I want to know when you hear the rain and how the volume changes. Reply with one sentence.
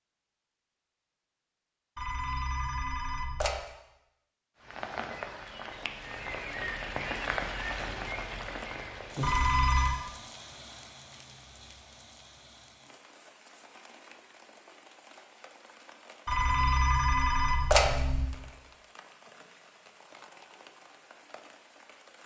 The rain can be heard from 4.5 to 22.2 s, getting quieter.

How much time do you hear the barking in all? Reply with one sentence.
You can't hear the barking here.